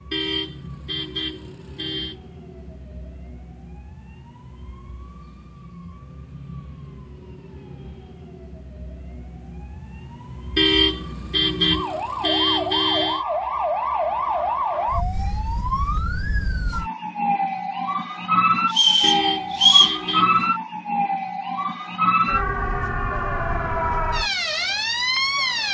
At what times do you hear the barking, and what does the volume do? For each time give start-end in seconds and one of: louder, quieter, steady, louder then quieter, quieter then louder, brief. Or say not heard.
not heard.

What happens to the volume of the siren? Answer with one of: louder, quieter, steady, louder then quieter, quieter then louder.
louder.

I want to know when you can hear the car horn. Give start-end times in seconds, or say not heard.
0.1-2.2, 10.6-13.2, 19.0-20.4.